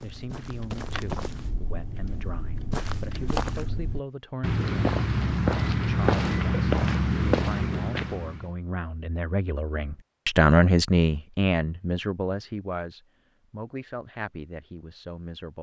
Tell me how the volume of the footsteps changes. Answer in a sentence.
The loudness of the footsteps goes up.